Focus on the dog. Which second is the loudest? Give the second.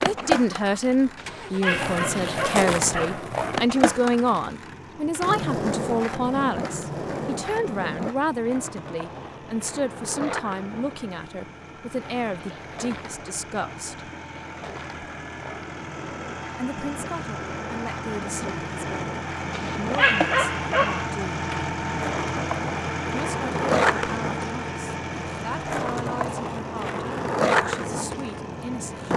20 s.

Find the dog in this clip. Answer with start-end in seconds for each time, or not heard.
1.1-3.2, 19.5-21.1.